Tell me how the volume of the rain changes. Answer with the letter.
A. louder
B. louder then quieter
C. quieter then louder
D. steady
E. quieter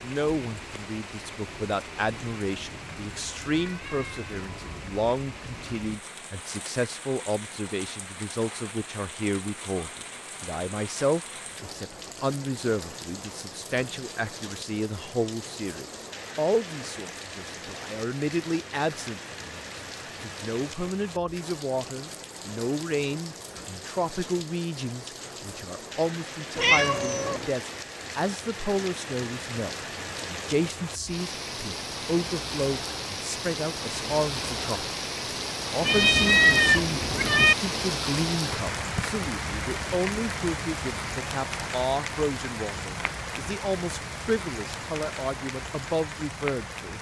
A.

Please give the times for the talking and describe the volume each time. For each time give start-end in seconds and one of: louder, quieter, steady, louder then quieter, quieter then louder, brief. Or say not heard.
0.0-46.9 steady.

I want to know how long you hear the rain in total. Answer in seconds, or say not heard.
47 s.